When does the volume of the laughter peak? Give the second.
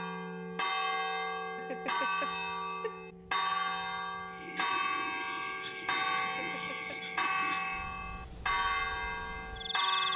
2 s.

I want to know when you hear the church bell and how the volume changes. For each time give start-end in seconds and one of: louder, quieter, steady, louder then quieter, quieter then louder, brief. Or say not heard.
0.0-10.1 steady.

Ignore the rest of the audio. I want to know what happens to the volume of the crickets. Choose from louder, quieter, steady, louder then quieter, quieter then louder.
quieter.